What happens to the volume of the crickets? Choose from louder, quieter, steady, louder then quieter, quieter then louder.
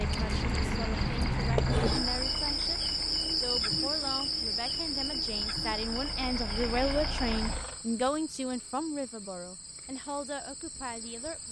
quieter.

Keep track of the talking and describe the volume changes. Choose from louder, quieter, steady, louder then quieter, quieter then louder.
louder then quieter.